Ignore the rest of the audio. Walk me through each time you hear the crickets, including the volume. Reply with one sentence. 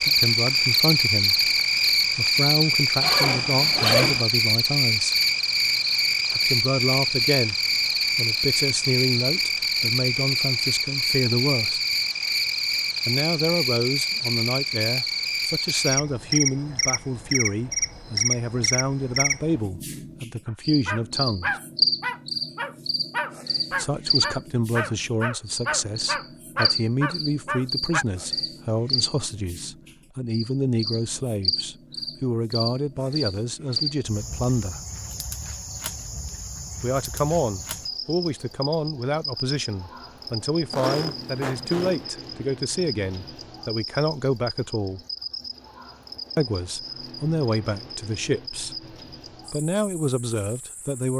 You can hear the crickets from 0.0 to 51.1 s, getting quieter.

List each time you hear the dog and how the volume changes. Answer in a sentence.
You can hear the dog from 20.4 to 28.1 s, at a steady volume.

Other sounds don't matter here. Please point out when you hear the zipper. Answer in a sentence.
The zipper can be heard from 3.0 to 4.2 s and from 40.7 to 42.0 s.